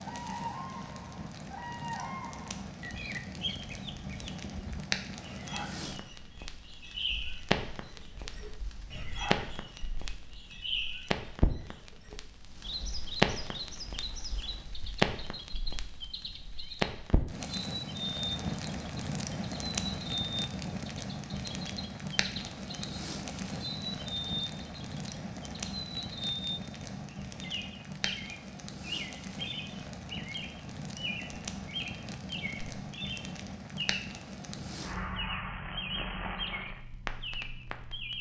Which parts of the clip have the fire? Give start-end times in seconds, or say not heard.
0.0-38.1.